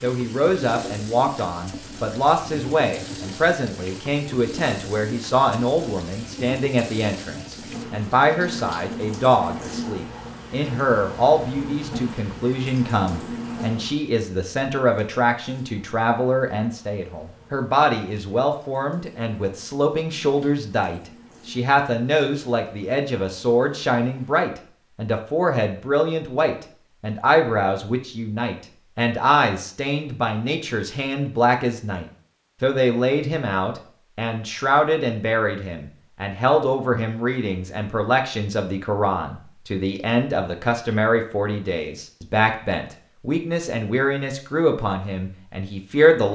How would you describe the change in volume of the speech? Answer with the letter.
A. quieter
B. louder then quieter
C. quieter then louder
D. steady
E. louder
D.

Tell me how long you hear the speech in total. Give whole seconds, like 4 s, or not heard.
46 s.